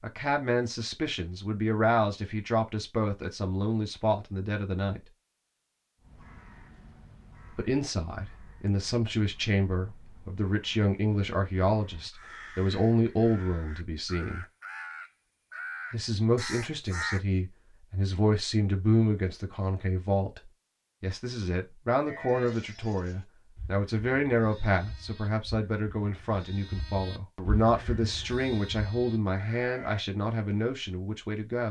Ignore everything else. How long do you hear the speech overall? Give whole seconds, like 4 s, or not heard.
28 s.